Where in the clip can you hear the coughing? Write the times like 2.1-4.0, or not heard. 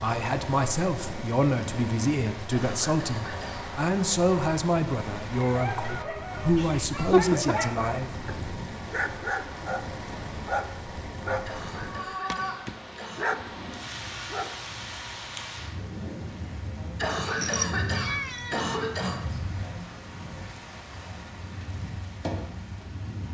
2.5-3.6, 11.4-13.3, 16.9-19.2.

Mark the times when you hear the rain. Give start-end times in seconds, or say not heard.
0.0-23.2.